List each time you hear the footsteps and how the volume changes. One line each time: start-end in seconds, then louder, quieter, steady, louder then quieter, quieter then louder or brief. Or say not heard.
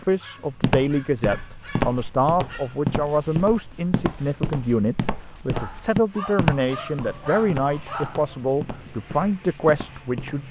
0.6-10.4 quieter.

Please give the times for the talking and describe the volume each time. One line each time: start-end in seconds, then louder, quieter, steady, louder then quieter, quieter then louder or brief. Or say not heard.
0.0-10.4 steady.